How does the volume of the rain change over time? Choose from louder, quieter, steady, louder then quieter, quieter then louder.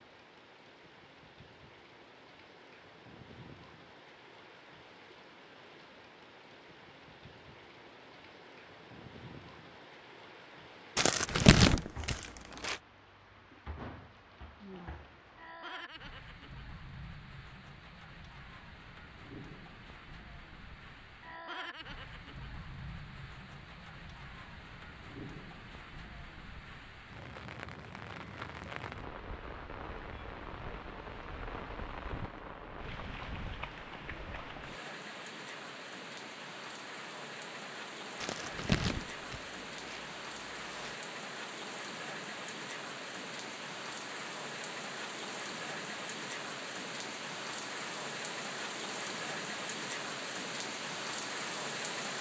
louder.